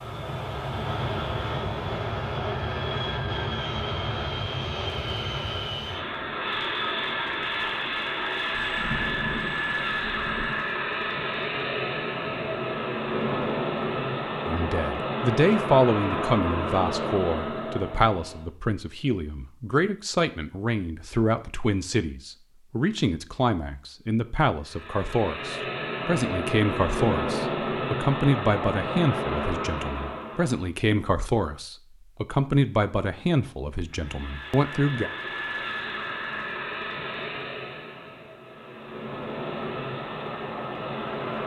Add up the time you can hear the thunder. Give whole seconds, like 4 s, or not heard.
2 s.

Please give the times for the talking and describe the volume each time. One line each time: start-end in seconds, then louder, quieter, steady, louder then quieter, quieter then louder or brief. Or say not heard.
14.4-35.1 steady.